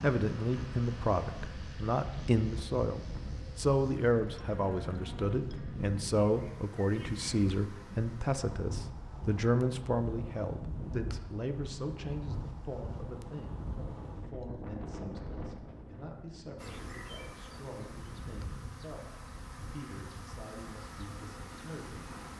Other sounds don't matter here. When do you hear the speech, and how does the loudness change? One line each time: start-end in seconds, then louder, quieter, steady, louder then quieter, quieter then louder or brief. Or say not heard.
0.0-22.1 quieter.